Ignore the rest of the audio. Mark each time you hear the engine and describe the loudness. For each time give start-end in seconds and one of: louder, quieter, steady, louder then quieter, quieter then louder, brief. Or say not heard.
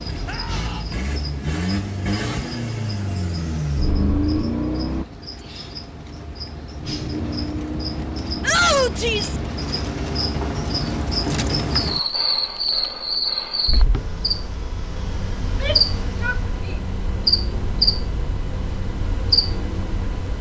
0.0-5.0 louder
6.8-11.0 quieter
13.9-20.1 steady.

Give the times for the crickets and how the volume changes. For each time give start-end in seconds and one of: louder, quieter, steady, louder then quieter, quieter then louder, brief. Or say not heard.
0.0-20.3 louder.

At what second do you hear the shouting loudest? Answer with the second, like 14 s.
9 s.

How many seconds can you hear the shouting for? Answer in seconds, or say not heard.
3 s.